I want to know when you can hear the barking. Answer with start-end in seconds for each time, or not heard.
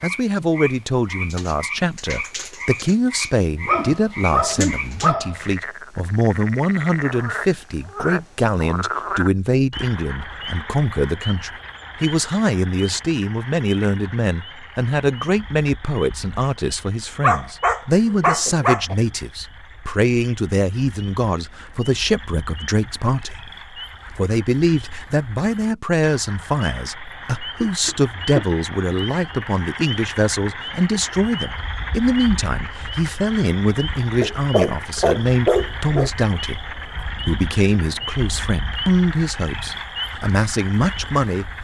3.6-5.5, 17.2-18.9, 34.2-36.1.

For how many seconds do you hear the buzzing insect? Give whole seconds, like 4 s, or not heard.
not heard.